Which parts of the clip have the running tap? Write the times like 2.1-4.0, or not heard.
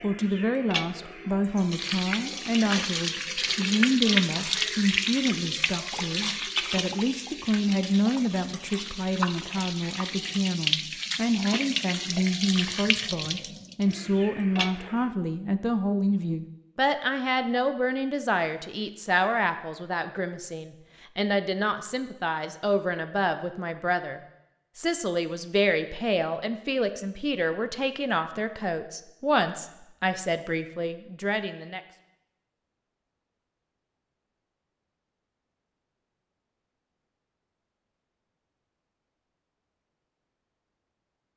0.0-15.1.